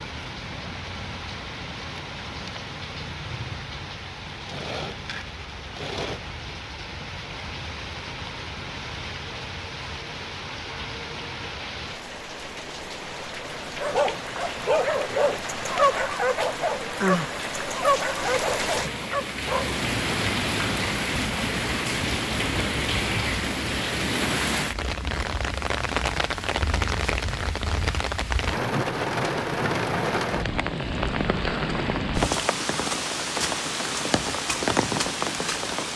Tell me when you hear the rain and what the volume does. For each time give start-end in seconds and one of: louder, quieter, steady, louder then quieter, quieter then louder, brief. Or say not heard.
0.0-35.9 louder.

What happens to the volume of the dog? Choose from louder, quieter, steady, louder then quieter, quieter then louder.
quieter.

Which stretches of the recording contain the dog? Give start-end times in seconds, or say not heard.
13.8-19.8.